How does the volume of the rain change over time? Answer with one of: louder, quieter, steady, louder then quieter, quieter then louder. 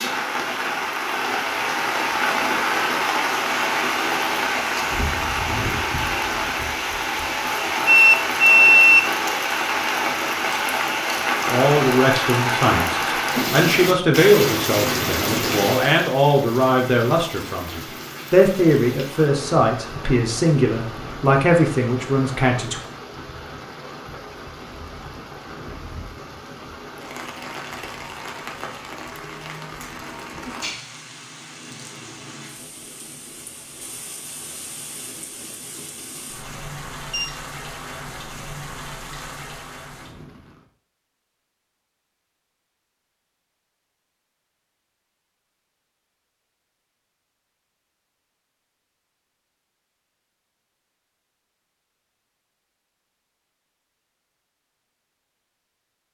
quieter.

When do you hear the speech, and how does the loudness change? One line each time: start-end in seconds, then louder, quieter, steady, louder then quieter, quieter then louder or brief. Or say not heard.
11.4-22.8 steady.